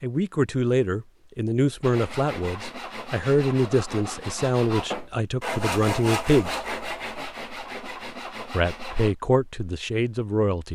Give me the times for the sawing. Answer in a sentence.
You can hear the sawing from 1.8 to 9.2 s.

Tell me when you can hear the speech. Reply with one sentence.
You can hear the speech from 0.0 to 6.6 s and from 8.5 to 10.6 s.